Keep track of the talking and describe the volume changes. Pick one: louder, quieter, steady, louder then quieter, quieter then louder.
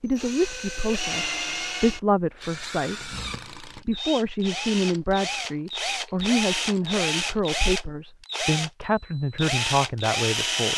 steady.